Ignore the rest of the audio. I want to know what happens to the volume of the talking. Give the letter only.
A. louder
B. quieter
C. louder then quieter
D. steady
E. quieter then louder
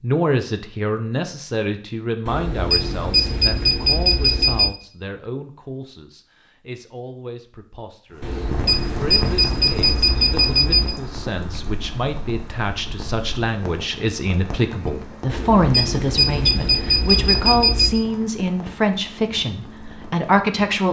E.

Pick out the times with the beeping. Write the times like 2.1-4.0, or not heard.
2.2-4.7, 8.2-10.9, 15.2-18.0.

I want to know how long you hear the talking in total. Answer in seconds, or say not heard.
21 s.